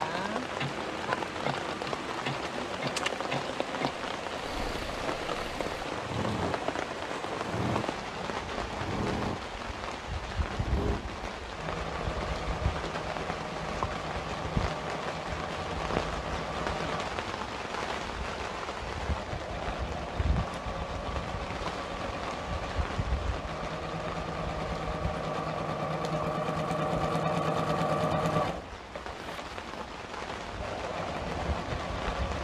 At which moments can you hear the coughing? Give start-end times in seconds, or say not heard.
not heard.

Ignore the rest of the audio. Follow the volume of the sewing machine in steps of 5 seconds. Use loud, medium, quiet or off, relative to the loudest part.
medium, medium, medium, medium, medium, loud, medium.